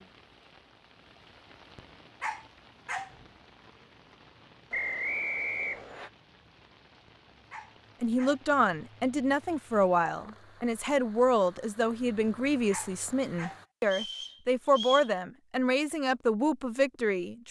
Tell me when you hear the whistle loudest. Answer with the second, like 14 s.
5 s.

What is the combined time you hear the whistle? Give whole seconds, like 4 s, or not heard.
3 s.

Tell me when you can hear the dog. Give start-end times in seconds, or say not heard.
1.8-3.1, 7.0-8.4, 12.2-13.7.